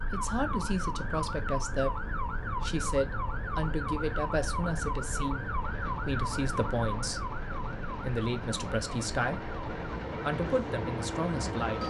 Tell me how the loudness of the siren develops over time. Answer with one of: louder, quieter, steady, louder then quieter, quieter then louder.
quieter.